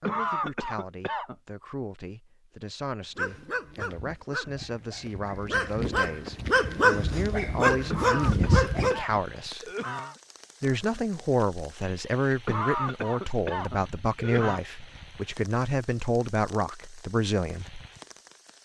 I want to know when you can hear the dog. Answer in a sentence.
You can hear the dog from 3.1 to 9.0 s.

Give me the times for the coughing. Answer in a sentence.
You can hear the coughing from 0.0 to 1.4 s, from 7.9 to 10.2 s and from 12.4 to 14.6 s.